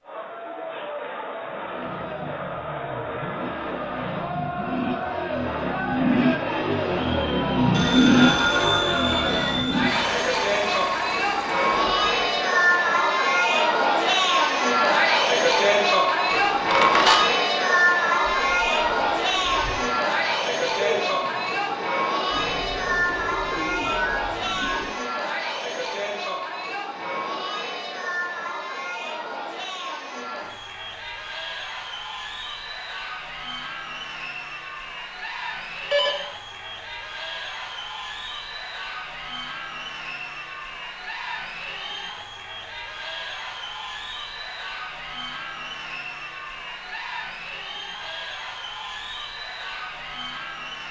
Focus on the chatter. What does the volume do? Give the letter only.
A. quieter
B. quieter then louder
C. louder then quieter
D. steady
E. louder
C.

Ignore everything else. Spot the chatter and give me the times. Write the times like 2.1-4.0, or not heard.
0.0-50.8.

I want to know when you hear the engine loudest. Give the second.
8 s.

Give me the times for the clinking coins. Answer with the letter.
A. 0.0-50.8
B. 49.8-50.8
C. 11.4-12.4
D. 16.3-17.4
D.